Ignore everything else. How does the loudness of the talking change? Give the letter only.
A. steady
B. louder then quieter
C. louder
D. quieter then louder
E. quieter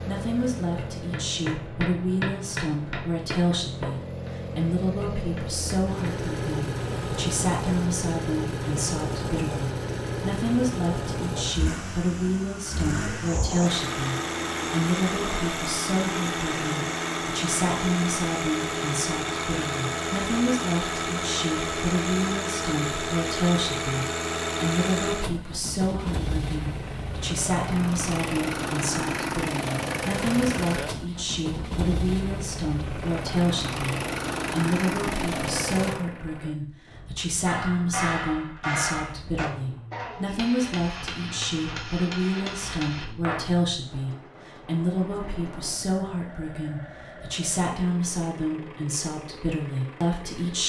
A.